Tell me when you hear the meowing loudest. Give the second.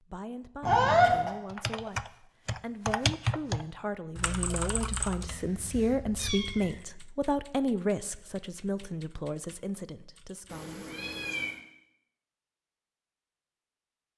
1 s.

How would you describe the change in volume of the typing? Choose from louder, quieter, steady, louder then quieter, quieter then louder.
quieter.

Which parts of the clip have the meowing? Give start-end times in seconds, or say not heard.
0.6-1.3, 5.2-6.8, 10.4-11.6.